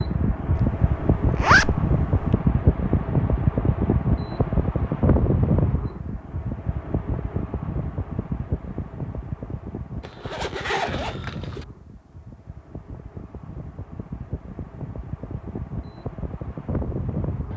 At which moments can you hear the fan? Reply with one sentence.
You can hear the fan from 0.0 to 17.5 s.